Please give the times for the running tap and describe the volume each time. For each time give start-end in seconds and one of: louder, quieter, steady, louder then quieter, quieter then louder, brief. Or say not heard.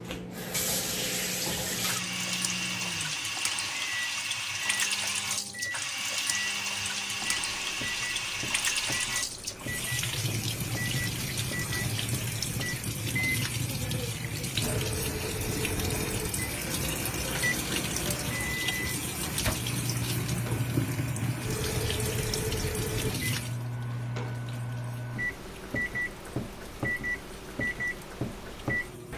0.0-29.1 quieter.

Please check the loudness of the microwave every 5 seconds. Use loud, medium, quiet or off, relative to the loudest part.
medium, medium, medium, loud, loud, loud.